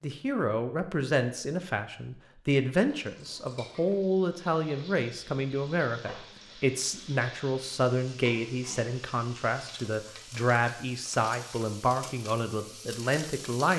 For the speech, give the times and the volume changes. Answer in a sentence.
The speech can be heard from 0.0 to 13.7 s, at a steady volume.